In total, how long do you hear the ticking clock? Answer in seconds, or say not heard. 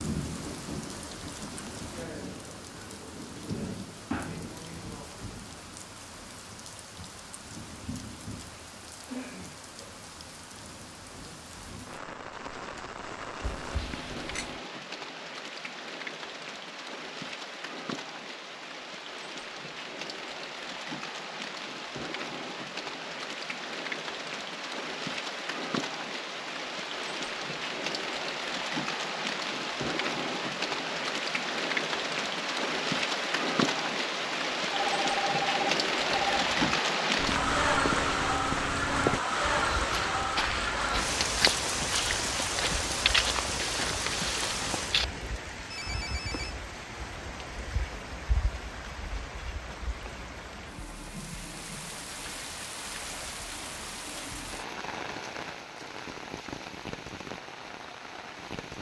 not heard.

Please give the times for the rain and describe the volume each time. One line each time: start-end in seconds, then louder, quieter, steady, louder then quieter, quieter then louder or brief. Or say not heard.
0.0-58.7 louder then quieter.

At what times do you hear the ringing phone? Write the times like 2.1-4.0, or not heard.
13.4-14.6, 34.7-36.5, 45.7-46.5.